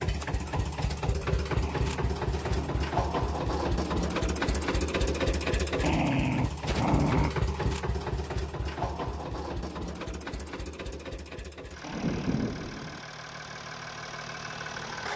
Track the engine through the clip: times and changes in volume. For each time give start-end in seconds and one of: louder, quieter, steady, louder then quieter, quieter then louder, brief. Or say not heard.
0.0-15.1 quieter.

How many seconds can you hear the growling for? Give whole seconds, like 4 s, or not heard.
4 s.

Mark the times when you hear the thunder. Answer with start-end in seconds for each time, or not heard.
11.9-13.0.